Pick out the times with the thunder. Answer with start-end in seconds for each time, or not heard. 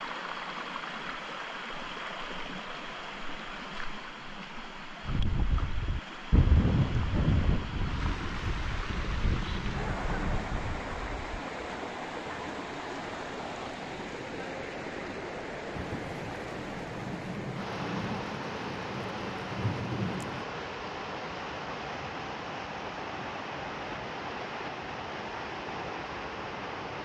8.0-10.6, 15.7-20.4.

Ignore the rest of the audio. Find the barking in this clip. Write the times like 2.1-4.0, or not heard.
not heard.